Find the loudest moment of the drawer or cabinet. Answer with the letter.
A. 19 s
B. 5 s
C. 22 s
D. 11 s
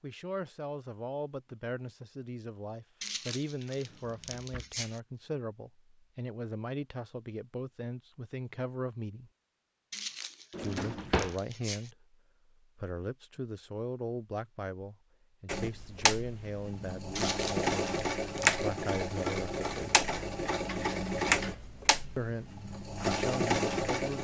D.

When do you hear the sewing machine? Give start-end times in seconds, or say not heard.
15.4-24.1.